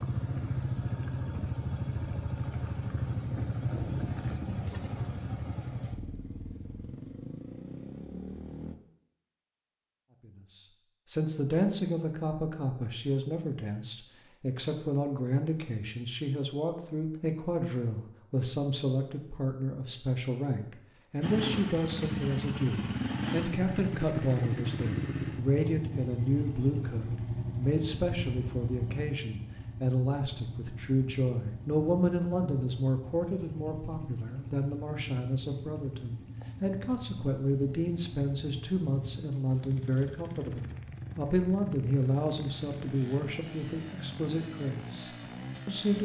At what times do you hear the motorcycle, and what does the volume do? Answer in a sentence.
You can hear the motorcycle from 0.0 to 8.8 s, getting quieter; and from 21.2 to 45.9 s, getting quieter.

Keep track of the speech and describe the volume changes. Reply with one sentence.
The volume of the speech stays about the same.